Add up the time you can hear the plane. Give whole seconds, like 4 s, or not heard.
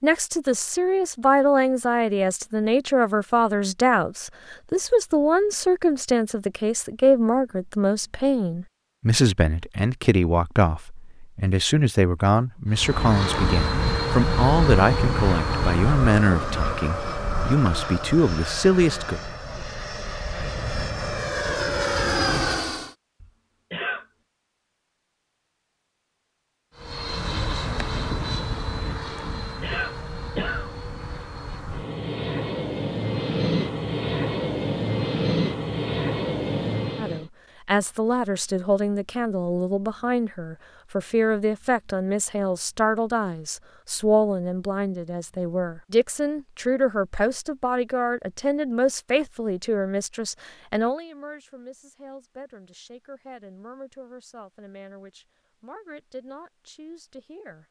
21 s.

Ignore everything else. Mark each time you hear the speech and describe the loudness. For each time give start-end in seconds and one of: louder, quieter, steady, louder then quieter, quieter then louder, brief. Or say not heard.
0.0-19.2 steady
37.0-57.6 quieter.